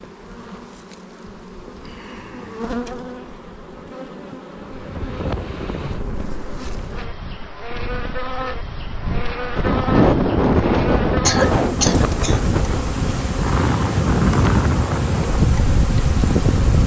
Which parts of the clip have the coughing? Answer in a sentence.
The coughing can be heard from 11.2 to 12.4 s.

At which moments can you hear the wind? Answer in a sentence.
You can hear the wind from 4.8 to 16.8 s.